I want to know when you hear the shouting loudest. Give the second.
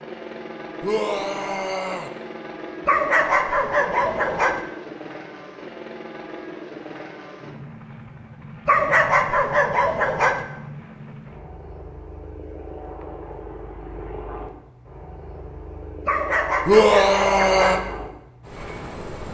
17 s.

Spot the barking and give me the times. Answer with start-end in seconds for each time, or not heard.
2.9-4.7, 8.7-10.4, 16.1-17.9.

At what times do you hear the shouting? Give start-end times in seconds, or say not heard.
0.8-2.1, 16.6-17.8.